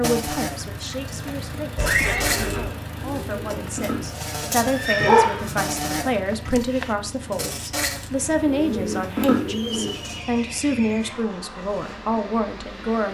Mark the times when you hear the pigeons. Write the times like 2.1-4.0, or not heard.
2.3-4.0, 8.2-10.2.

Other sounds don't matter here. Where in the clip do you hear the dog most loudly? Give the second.
5 s.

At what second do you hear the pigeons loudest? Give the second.
9 s.